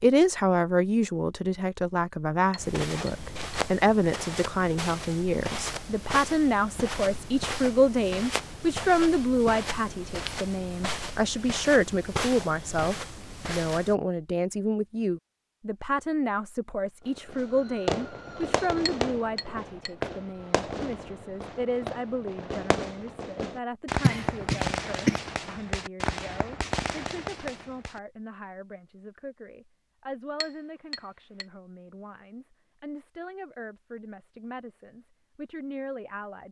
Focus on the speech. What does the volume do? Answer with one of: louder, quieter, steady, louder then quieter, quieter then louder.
quieter.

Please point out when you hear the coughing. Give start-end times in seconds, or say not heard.
24.0-25.2.